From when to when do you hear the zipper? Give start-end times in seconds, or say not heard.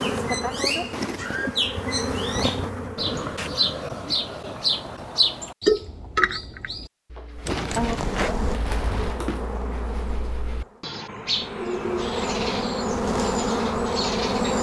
0.9-1.6, 7.5-8.3.